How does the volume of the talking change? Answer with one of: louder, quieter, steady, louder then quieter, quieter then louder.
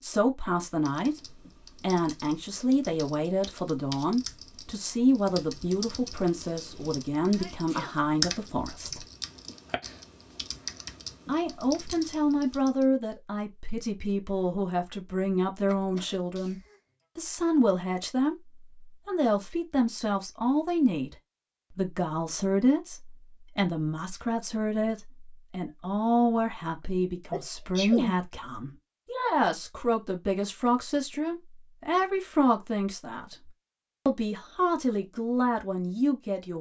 steady.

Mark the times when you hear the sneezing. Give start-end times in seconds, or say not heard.
7.3-8.4, 15.7-16.8, 27.3-28.1.